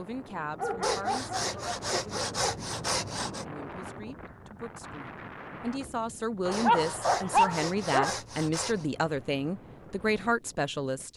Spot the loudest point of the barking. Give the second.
7 s.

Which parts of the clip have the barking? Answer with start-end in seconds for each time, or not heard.
0.6-2.5, 6.5-8.2.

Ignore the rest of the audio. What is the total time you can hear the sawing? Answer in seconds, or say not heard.
5 s.